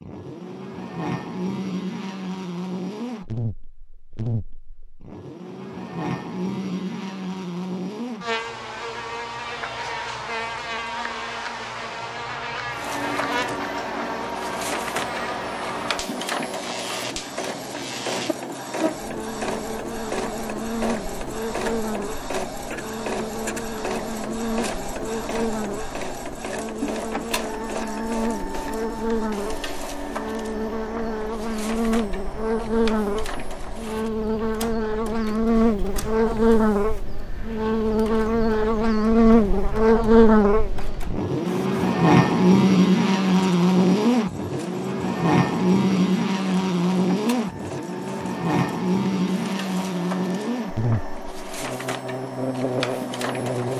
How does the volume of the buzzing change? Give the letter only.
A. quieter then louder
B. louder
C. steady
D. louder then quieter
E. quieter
B.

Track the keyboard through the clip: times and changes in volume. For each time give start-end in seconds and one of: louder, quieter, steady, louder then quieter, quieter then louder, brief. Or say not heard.
not heard.